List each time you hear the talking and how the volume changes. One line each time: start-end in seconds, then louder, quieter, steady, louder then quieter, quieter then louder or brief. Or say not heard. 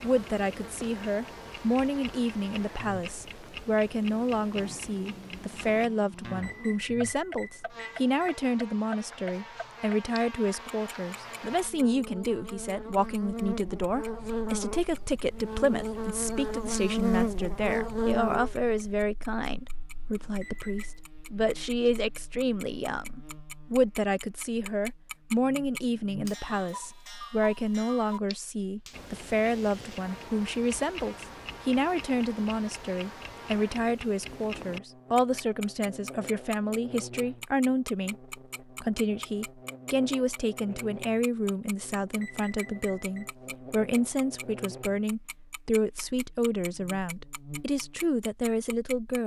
0.0-49.2 steady.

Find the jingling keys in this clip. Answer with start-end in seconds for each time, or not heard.
not heard.